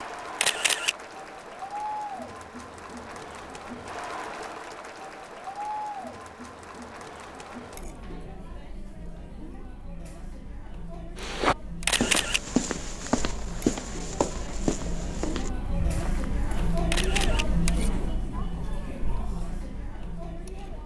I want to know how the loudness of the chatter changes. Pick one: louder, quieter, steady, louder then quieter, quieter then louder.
quieter then louder.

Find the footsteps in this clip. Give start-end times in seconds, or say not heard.
11.2-16.9.